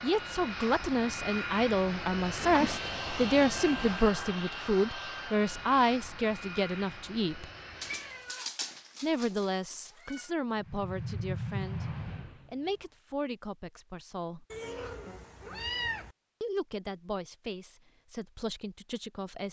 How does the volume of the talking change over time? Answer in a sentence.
The loudness of the talking goes down.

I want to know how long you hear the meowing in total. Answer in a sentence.
The meowing can be heard for 6 seconds in total.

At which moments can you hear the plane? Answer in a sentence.
You can hear the plane from 0.0 to 8.4 s and from 10.6 to 13.0 s.